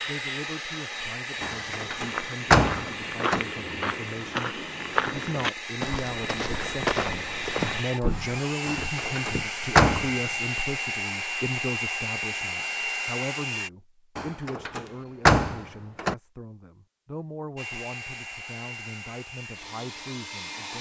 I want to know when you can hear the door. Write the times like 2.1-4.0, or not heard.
1.4-3.4, 8.7-10.2, 14.2-16.1.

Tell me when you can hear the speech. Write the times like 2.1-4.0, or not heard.
0.0-20.7.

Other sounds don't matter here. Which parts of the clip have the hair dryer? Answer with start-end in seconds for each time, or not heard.
0.0-13.7, 17.6-20.7.